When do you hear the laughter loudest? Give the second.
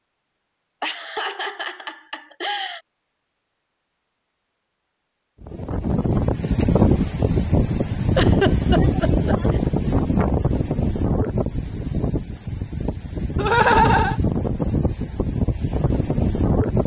14 s.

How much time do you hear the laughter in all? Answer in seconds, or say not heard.
4 s.